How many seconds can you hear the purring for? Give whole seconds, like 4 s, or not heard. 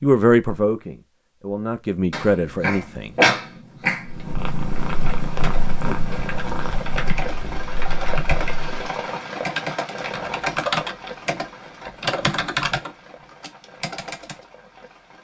5 s.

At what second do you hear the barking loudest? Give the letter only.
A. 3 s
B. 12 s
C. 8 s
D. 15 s
A.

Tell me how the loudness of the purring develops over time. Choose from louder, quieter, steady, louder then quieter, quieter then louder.
quieter.